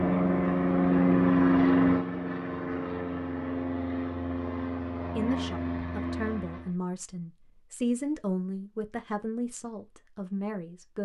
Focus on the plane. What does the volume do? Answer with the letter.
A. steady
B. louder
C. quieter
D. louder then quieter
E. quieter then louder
C.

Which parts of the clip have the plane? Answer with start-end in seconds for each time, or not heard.
0.0-6.8.